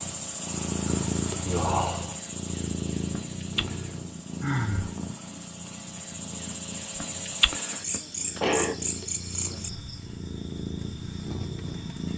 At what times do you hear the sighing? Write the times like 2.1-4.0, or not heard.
1.4-2.1, 4.4-4.9, 8.4-8.8.